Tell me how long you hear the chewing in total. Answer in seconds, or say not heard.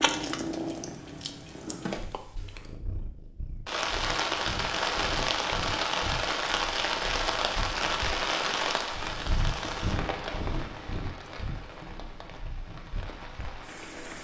3 s.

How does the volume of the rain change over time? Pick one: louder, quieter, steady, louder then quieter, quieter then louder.
quieter.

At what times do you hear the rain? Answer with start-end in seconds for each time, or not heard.
3.6-14.1.